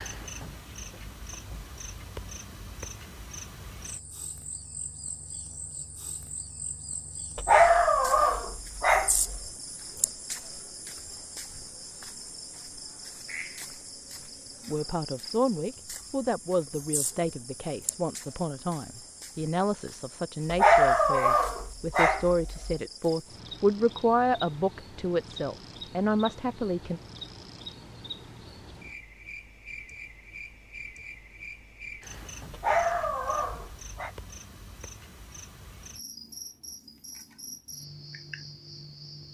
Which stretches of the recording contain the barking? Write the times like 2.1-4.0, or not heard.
7.3-9.4, 20.5-22.8, 32.5-34.1.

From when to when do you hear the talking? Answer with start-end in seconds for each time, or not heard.
14.7-27.0.